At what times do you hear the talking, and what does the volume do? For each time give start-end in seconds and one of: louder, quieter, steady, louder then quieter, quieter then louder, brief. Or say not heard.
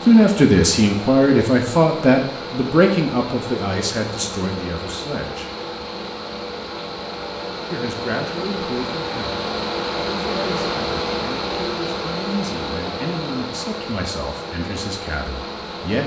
0.1-5.5 quieter
7.7-16.0 steady.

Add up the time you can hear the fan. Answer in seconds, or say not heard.
16 s.